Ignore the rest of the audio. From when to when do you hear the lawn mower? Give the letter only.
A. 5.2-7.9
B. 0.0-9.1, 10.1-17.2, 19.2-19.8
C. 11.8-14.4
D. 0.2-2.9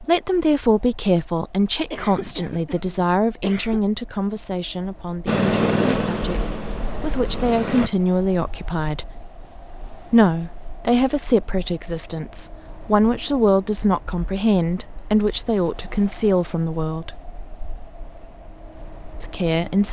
A.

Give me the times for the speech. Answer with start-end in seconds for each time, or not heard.
0.0-9.1, 10.1-17.2, 19.2-19.8.